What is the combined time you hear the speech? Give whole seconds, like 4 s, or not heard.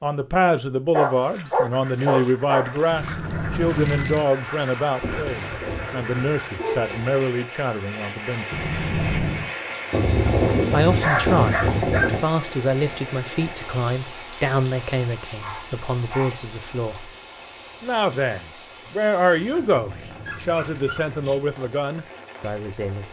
20 s.